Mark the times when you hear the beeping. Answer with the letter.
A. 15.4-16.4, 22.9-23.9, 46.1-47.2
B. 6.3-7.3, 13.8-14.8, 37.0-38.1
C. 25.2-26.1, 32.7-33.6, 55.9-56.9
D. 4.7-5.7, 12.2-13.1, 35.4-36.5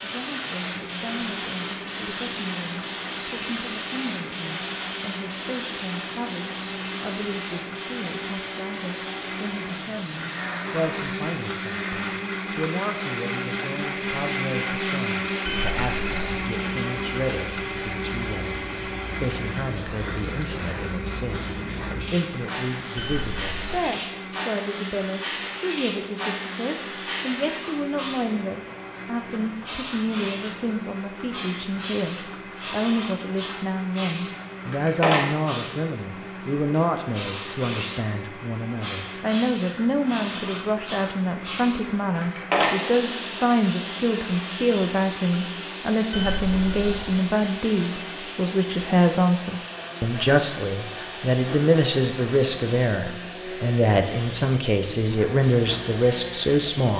A.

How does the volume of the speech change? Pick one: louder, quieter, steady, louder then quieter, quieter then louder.
louder.